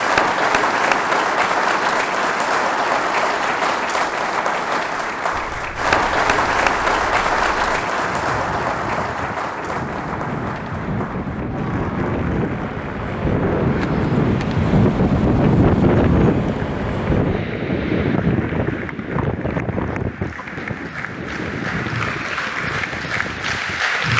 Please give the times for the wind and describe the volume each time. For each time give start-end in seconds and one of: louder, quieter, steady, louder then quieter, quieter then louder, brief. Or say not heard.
5.3-24.1 louder then quieter.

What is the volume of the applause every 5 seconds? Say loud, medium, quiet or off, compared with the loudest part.
loud, loud, quiet, quiet, medium.